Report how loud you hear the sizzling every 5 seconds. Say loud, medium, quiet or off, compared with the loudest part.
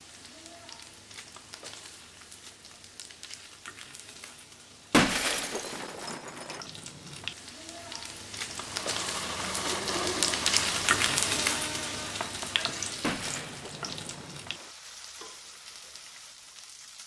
quiet, medium, loud, quiet.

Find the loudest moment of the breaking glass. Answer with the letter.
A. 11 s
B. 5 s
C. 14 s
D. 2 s
B.